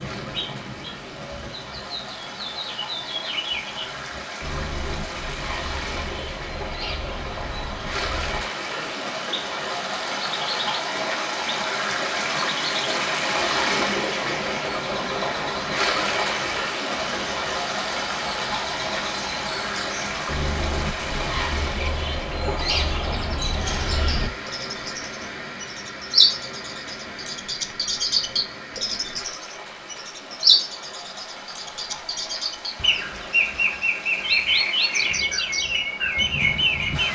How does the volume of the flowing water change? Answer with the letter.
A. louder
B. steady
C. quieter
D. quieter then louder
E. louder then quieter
E.